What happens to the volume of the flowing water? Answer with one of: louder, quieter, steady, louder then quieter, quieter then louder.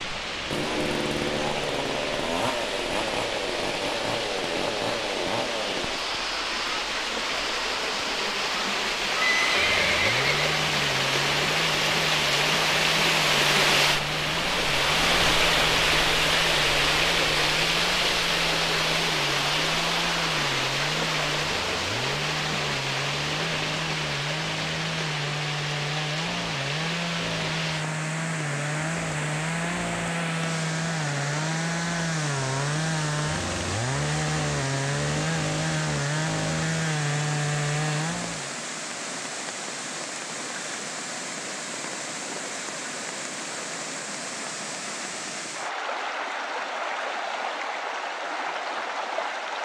louder then quieter.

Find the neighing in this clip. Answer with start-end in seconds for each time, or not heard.
9.2-10.7.